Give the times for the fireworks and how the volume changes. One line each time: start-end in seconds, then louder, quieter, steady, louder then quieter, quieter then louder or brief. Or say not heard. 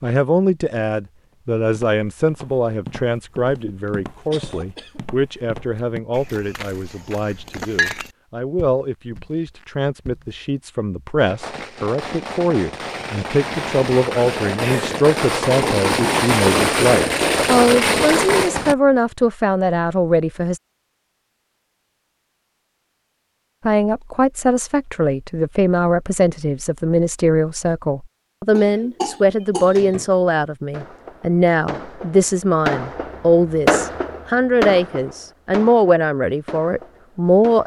11.2-18.8 louder
30.7-37.6 louder then quieter.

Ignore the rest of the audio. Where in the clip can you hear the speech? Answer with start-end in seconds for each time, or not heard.
0.0-20.6, 23.6-37.6.